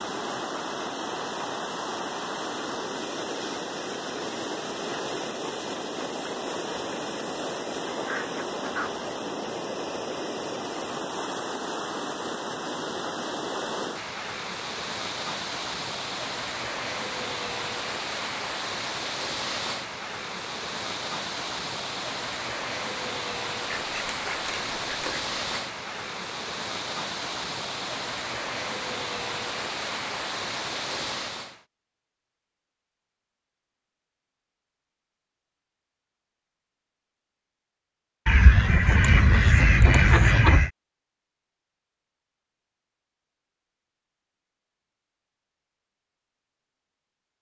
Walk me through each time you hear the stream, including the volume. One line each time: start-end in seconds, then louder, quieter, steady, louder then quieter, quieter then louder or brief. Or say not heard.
0.0-31.6 steady.